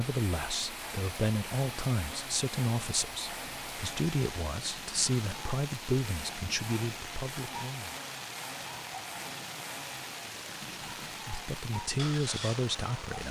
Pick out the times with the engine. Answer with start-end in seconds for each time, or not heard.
0.0-13.0.